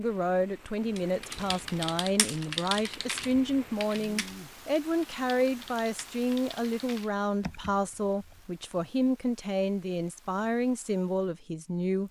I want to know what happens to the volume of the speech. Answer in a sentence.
The loudness of the speech stays about the same.